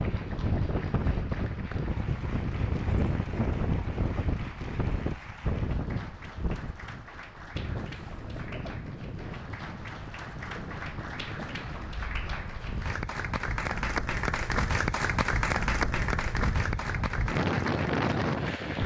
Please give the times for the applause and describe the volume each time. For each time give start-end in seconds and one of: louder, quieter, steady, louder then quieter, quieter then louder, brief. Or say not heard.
0.0-18.8 louder.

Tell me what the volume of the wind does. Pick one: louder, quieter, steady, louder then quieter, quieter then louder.
quieter then louder.